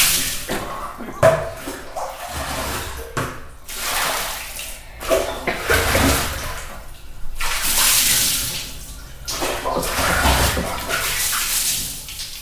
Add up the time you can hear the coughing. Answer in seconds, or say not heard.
3 s.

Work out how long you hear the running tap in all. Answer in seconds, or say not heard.
12 s.